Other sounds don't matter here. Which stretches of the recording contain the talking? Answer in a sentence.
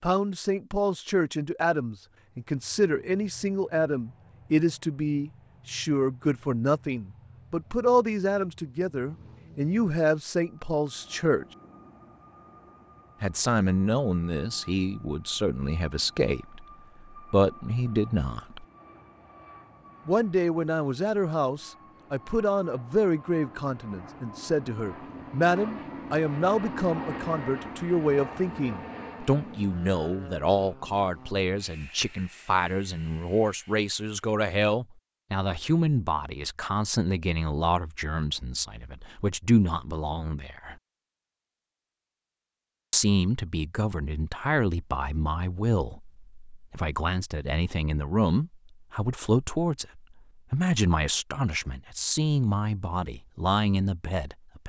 The talking can be heard from 0.0 to 11.4 s, from 13.2 to 18.6 s, from 20.1 to 40.8 s and from 42.9 to 54.6 s.